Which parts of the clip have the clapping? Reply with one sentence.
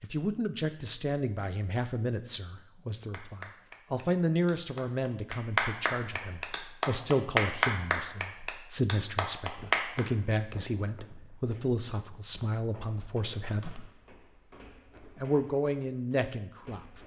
The clapping can be heard from 3.1 to 10.0 s.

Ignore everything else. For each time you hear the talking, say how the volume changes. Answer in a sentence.
The talking can be heard from 0.0 to 13.9 s, at a steady volume; and briefly from 15.2 to 17.0 s.